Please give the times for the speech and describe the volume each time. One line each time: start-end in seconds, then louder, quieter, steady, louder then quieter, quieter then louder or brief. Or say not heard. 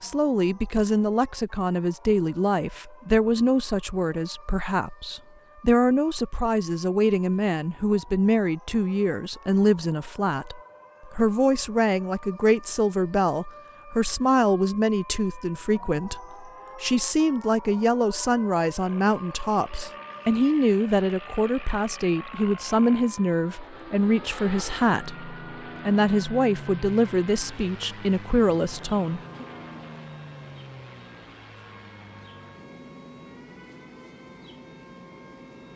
0.0-29.4 steady.